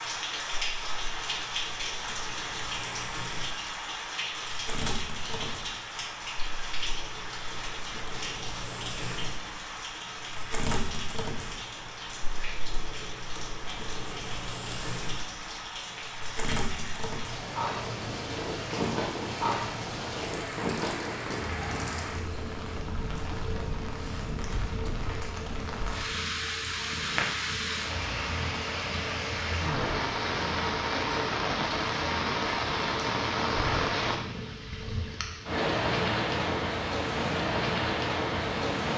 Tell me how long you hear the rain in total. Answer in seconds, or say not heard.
39 s.